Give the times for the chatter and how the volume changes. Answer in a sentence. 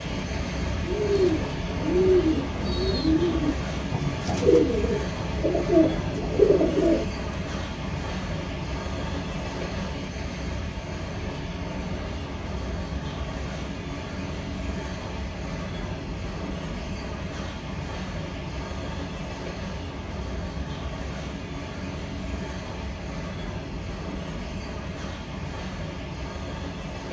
You can't hear the chatter here.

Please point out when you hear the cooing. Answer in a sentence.
You can hear the cooing from 0.8 to 7.0 s.